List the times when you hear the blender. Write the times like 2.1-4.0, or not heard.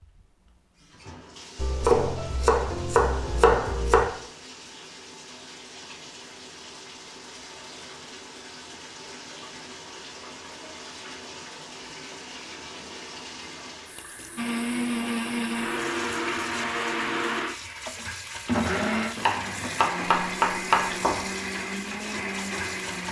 14.3-23.0.